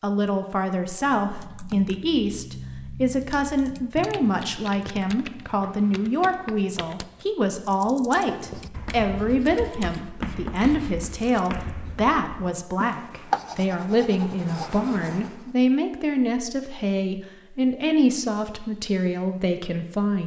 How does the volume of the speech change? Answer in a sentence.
The loudness of the speech stays about the same.